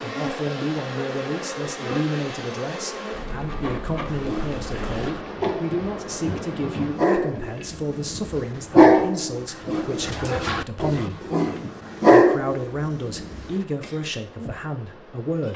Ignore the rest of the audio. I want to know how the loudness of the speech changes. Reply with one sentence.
The loudness of the speech stays about the same.